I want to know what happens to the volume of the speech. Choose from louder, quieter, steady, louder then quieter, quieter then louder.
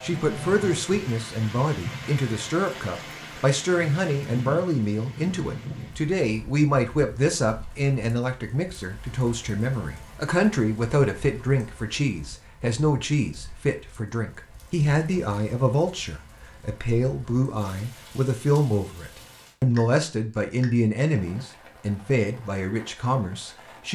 steady.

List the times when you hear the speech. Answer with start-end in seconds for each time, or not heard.
0.0-23.8.